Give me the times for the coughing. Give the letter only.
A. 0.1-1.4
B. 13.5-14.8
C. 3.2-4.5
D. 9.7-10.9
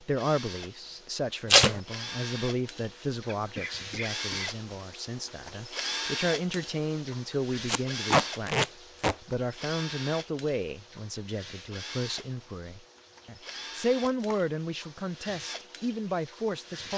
C.